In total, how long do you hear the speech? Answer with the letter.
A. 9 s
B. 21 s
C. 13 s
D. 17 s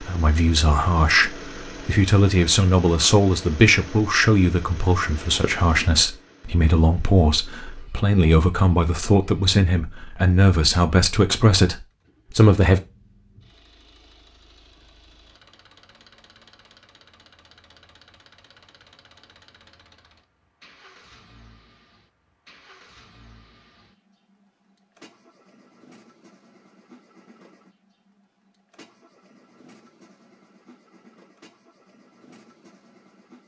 C.